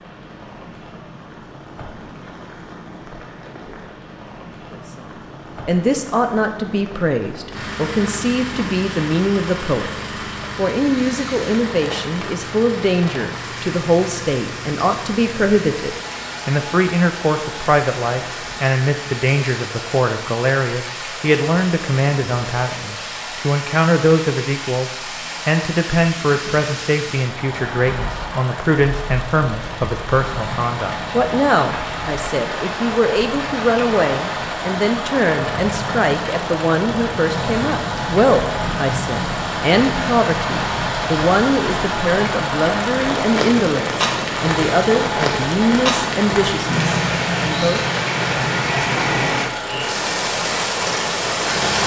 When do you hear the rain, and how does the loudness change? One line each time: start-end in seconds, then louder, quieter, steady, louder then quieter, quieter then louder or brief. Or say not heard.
0.0-51.8 louder.